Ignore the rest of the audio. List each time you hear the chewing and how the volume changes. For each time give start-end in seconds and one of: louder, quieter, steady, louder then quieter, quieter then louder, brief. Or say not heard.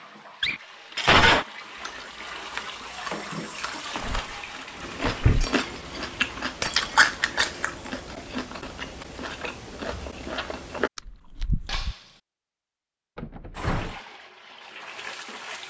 1.8-11.9 louder then quieter.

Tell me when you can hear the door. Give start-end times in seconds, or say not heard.
4.0-5.5, 13.2-14.0.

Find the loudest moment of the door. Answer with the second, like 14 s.
5 s.